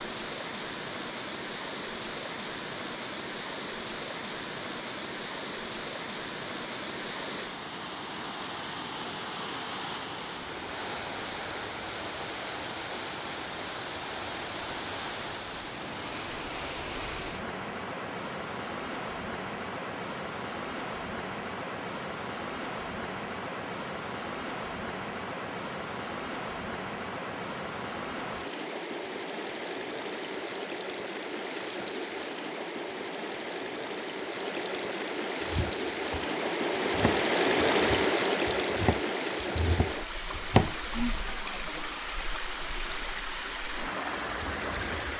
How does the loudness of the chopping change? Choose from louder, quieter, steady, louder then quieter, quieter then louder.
louder.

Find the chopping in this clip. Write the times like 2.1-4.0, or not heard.
35.5-41.1.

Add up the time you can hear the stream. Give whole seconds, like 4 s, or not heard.
45 s.